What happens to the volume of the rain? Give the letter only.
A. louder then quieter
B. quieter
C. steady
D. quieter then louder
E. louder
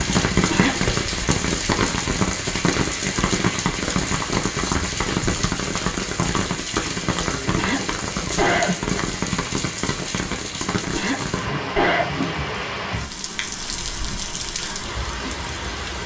B.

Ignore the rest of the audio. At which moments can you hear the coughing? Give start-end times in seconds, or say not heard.
0.3-0.9, 7.5-9.0, 10.8-12.1.